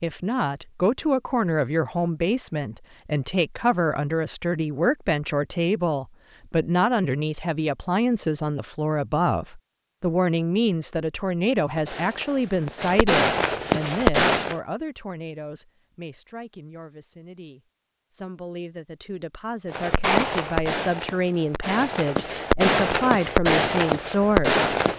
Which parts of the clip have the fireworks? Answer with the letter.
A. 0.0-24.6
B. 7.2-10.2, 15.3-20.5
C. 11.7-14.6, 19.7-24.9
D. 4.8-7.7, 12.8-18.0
C.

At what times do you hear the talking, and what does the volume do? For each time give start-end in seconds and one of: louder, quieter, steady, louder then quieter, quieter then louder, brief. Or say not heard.
0.0-24.6 quieter then louder.